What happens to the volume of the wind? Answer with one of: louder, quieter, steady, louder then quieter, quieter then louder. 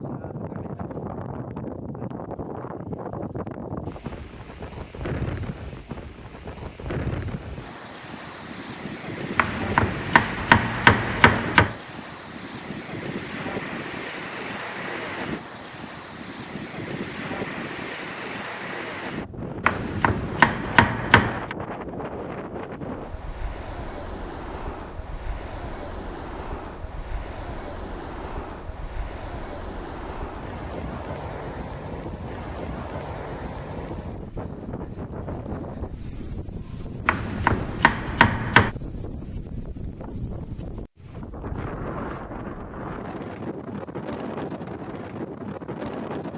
steady.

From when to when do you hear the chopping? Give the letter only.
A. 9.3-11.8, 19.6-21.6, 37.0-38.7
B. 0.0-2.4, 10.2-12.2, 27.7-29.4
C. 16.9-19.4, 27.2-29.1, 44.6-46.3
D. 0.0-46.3
A.